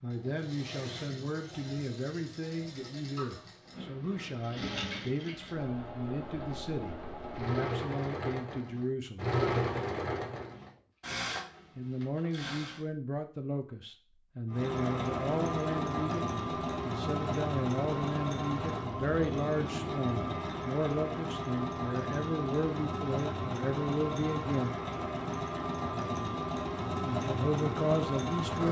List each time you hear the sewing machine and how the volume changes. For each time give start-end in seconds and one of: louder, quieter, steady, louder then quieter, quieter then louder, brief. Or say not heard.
0.1-12.8 louder then quieter
14.5-28.6 steady.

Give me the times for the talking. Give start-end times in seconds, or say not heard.
0.0-9.3, 11.8-24.8, 27.1-28.6.